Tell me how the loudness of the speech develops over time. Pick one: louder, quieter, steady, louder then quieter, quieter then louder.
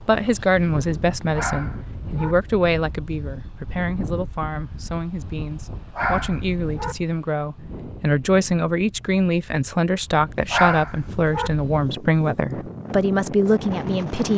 quieter then louder.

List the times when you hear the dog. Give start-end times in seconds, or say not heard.
1.4-2.4, 6.0-7.0, 10.5-11.5.